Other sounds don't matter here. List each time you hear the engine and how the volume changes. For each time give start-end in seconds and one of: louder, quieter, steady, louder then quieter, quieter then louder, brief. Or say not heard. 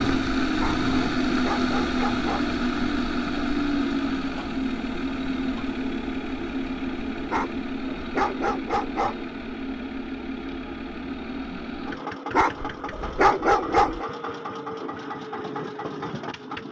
0.0-16.6 quieter.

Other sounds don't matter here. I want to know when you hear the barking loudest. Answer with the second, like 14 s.
13 s.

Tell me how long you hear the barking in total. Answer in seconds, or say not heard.
6 s.